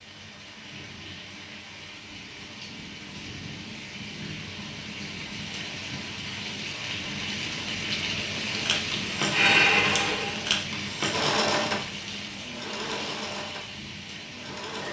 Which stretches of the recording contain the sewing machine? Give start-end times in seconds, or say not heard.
8.5-14.8.